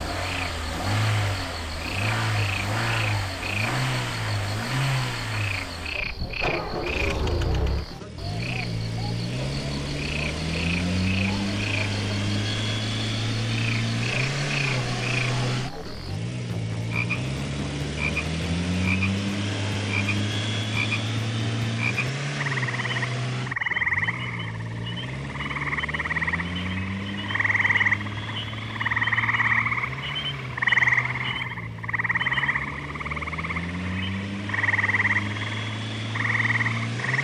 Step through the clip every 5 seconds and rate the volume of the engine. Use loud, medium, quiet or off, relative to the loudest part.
loud, loud, loud, loud, loud, medium, medium, loud.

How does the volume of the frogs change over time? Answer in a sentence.
The loudness of the frogs goes up.